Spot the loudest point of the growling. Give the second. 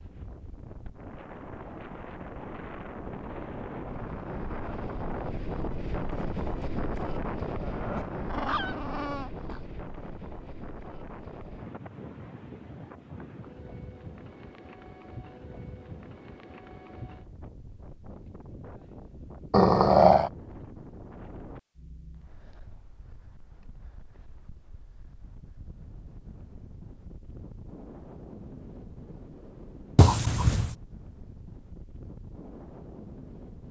20 s.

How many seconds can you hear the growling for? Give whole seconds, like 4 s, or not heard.
4 s.